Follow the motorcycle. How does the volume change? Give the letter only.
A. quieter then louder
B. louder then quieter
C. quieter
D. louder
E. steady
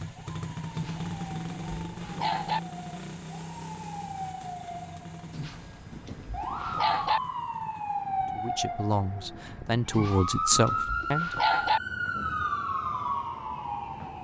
C.